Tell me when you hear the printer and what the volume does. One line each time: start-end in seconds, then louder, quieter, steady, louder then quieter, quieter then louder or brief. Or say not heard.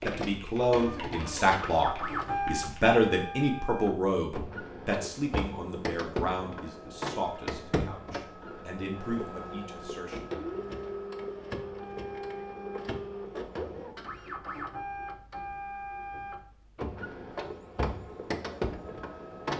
0.0-19.5 steady.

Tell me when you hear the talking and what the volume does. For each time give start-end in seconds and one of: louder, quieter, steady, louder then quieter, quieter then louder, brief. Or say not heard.
0.0-10.3 quieter.